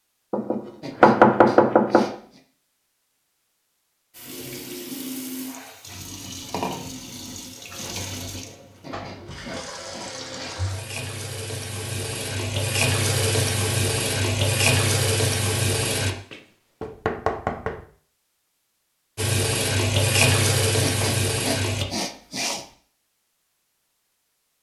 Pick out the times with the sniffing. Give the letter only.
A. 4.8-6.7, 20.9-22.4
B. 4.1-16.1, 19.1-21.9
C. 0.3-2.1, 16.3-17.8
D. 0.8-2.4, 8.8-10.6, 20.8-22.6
D.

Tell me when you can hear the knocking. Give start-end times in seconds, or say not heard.
0.3-2.1, 16.3-17.8.